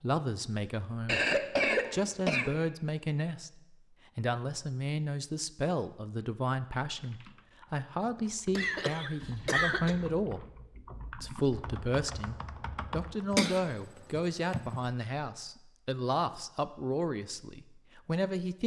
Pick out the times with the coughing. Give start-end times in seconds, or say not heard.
1.1-2.6, 8.6-9.9, 13.3-14.8.